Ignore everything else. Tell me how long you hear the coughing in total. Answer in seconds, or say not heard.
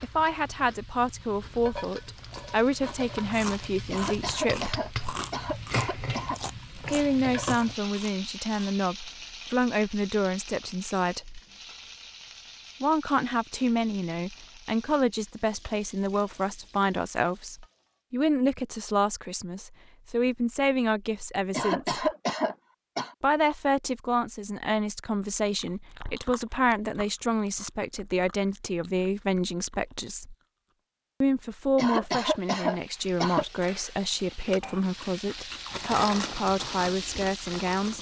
6 s.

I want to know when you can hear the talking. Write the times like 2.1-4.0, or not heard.
0.0-4.8, 6.8-11.4, 12.8-22.1, 23.2-30.4, 31.2-37.9.